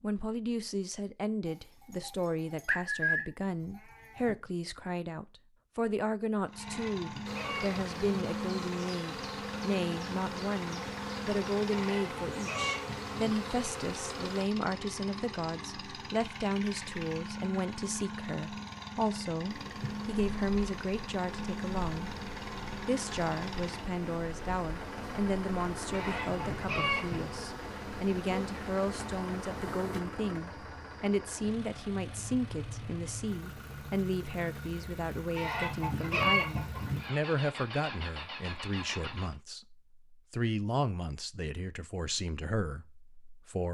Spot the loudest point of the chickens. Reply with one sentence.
The loudest moment of the chickens is at 36 seconds.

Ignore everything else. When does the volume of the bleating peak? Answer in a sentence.
The volume of the bleating peaks at 3 seconds.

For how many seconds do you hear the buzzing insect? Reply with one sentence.
The buzzing insect can be heard for 18 seconds in total.